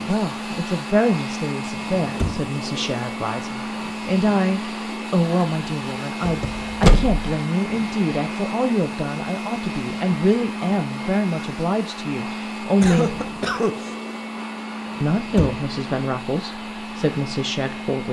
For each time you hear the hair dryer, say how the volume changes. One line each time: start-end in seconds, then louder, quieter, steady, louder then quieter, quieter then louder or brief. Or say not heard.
0.0-18.0 steady.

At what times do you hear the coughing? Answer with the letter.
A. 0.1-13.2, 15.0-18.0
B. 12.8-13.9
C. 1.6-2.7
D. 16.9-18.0
B.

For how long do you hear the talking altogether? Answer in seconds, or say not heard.
16 s.